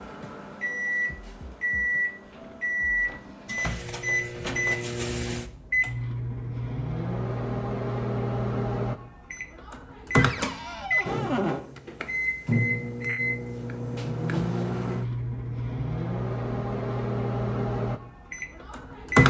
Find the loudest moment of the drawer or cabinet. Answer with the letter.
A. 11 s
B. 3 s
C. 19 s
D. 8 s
A.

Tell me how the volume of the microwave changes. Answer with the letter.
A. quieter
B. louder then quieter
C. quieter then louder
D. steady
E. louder
D.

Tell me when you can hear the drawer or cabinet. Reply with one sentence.
The drawer or cabinet can be heard from 2.3 to 4.7 s and from 10.2 to 11.7 s.